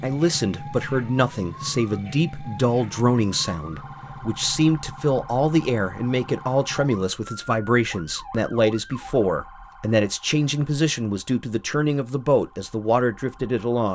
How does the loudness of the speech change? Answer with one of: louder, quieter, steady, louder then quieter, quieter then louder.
steady.